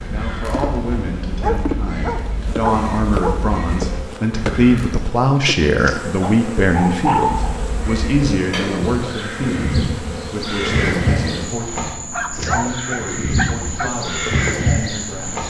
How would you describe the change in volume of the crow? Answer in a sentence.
The volume of the crow goes up.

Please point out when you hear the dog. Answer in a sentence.
You can hear the dog from 1.4 to 3.4 s, from 6.2 to 7.5 s and from 12.1 to 13.9 s.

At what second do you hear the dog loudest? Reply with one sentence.
The volume of the dog peaks at 7 seconds.